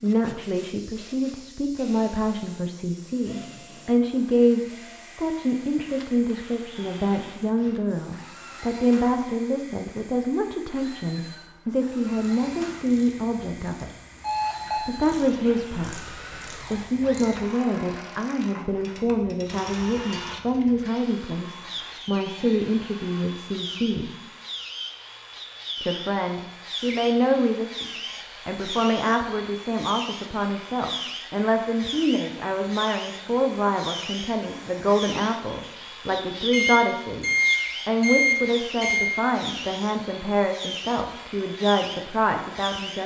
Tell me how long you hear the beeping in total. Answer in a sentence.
The beeping can be heard for 3 seconds in total.